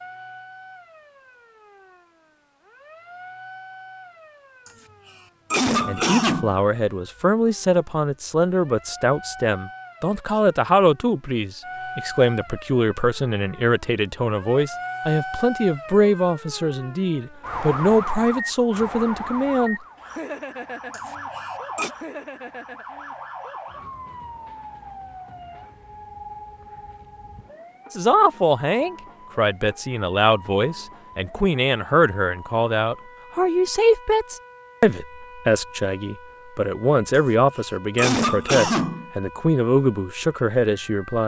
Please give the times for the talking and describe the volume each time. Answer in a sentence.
The talking can be heard from 5.8 to 19.8 s, at a steady volume; and from 27.9 to 41.2 s, at a steady volume.